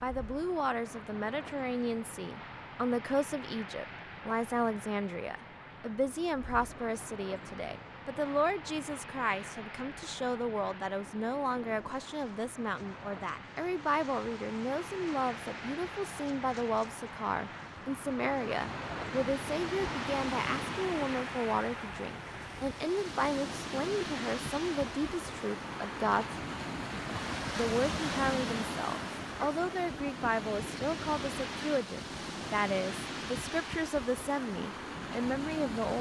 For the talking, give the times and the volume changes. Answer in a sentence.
You can hear the talking from 0.0 to 26.4 s, at a steady volume; and from 27.6 to 35.9 s, at a steady volume.